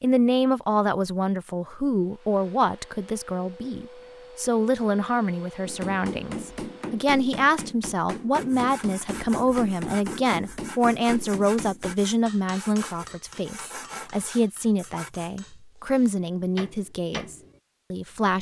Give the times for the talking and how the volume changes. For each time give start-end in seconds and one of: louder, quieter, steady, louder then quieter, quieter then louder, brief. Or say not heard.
0.0-18.3 steady.